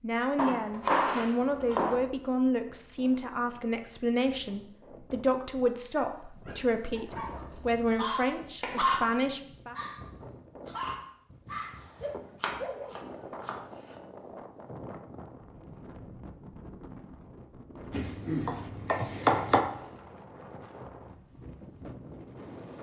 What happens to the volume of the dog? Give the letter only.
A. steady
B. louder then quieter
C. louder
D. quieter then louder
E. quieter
B.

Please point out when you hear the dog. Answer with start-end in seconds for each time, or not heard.
6.0-12.9.